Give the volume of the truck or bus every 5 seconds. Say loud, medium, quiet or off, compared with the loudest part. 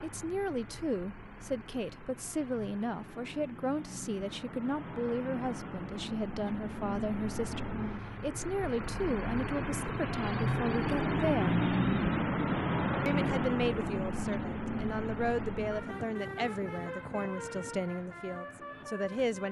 quiet, medium, loud, medium.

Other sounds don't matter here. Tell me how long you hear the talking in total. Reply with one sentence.
The talking can be heard for 18 seconds in total.